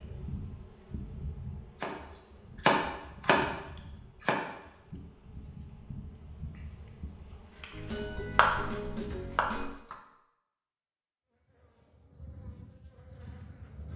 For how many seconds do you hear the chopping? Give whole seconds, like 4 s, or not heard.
5 s.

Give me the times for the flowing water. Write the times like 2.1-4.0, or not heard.
not heard.